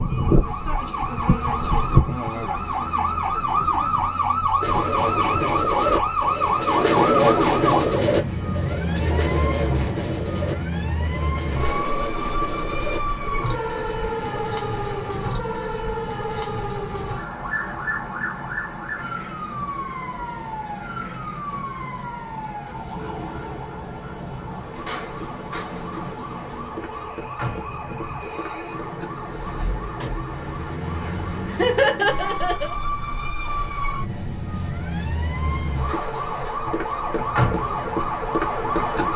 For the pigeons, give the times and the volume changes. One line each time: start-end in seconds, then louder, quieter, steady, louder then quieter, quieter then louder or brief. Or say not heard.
4.6-13.6 louder then quieter.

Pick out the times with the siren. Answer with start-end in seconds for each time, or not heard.
0.0-39.1.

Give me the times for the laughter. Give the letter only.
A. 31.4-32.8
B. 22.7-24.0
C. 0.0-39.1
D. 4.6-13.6
A.